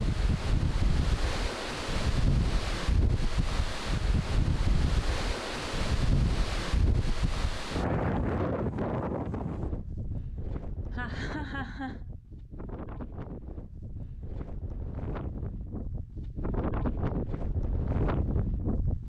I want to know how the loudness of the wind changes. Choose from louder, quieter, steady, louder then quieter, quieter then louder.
quieter then louder.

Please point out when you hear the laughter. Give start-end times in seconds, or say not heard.
10.9-12.1.